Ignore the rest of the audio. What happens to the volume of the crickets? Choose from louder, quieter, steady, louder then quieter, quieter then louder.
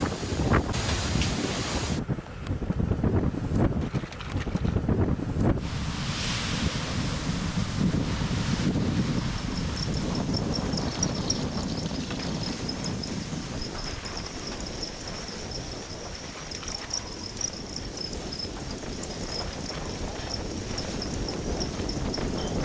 steady.